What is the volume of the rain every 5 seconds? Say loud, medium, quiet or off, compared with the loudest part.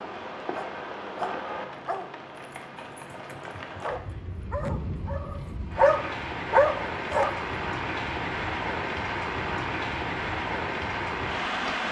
medium, loud, loud.